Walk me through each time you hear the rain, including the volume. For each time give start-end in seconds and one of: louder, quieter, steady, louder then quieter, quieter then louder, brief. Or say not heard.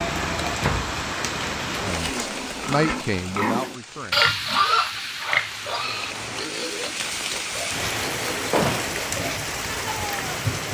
0.0-10.6 quieter then louder.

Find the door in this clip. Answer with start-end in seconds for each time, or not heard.
0.4-0.9, 8.5-9.1.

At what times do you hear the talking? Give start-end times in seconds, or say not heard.
1.8-4.2.